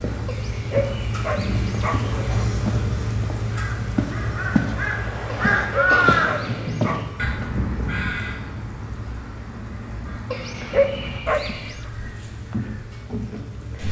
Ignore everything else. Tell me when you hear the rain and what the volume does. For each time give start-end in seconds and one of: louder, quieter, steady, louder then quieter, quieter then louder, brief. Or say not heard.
0.0-13.8 quieter.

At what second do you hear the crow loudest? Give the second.
6 s.